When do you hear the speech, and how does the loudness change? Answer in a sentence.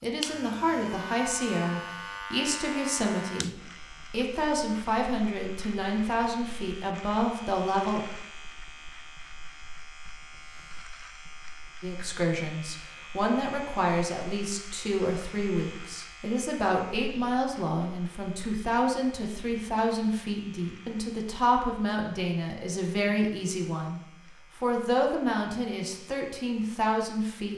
You can hear the speech from 0.0 to 8.1 s, at a steady volume; and from 11.8 to 27.5 s, at a steady volume.